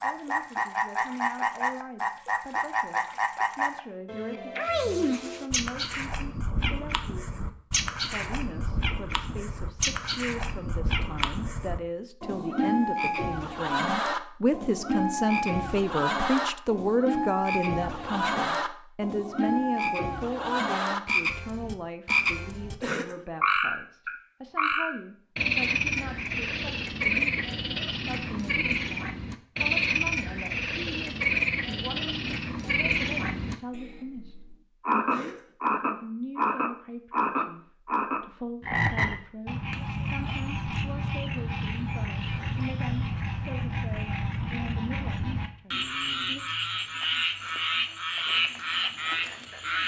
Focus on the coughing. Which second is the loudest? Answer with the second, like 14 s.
23 s.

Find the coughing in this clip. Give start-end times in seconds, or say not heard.
22.8-23.2, 35.0-35.5.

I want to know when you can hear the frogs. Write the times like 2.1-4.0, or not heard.
0.0-49.8.